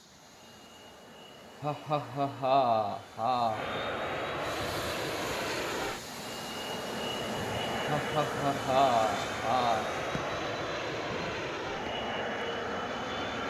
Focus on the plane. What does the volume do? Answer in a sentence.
The loudness of the plane goes up.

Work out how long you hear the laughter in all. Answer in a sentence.
You can hear the laughter for 4 seconds altogether.